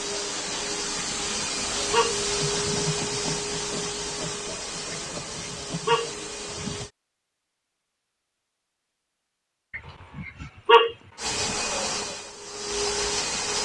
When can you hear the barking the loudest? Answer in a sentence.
The volume of the barking peaks at 11 seconds.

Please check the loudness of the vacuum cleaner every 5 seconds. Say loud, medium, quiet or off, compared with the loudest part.
loud, medium, loud.